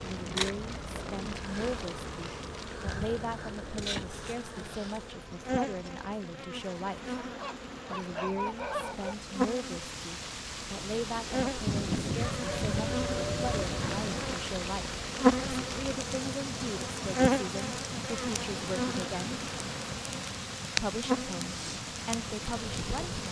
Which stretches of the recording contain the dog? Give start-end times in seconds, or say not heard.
7.2-9.2, 11.7-14.2.